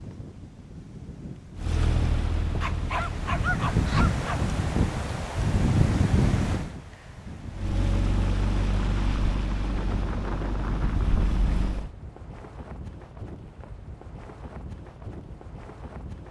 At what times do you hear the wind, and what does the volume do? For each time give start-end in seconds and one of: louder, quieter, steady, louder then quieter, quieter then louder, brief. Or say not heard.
0.0-16.2 louder then quieter.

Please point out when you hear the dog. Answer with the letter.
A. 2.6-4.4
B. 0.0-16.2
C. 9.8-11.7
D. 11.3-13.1
A.